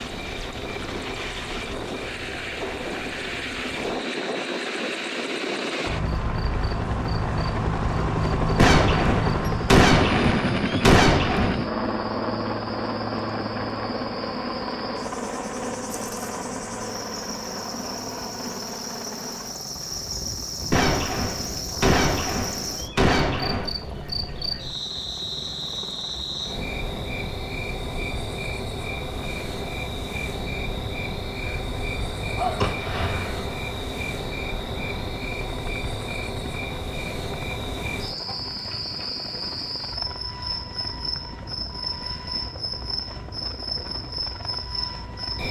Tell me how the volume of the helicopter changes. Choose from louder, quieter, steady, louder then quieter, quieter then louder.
quieter.